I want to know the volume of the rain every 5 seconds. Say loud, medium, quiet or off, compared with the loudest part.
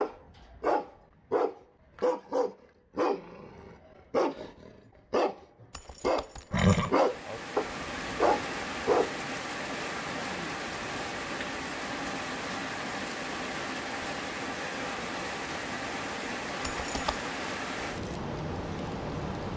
off, loud, loud, loud.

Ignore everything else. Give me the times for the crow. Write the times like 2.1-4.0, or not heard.
not heard.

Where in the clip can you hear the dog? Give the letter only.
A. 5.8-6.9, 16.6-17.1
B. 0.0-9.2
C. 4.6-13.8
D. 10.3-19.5
B.